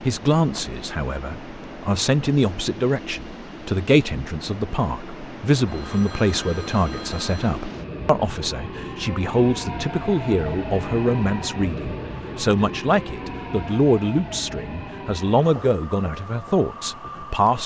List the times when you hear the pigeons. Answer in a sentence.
The pigeons can't be heard in this clip.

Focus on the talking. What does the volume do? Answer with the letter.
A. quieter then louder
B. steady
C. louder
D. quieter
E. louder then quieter
B.